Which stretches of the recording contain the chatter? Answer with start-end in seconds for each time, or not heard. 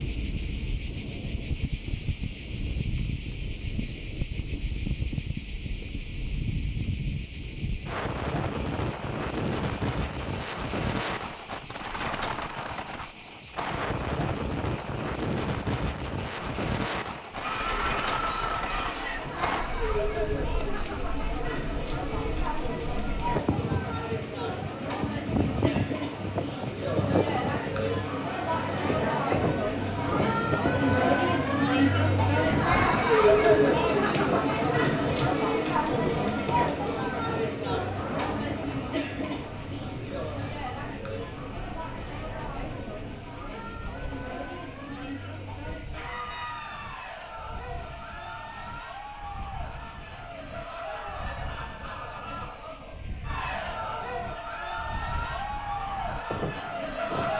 17.4-57.3.